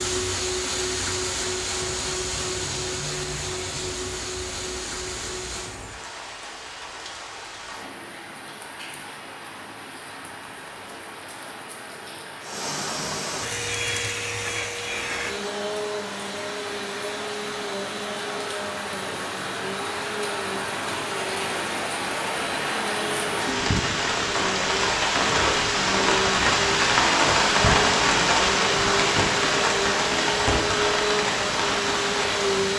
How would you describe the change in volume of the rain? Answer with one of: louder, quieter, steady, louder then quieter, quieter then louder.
louder.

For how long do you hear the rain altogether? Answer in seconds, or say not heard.
33 s.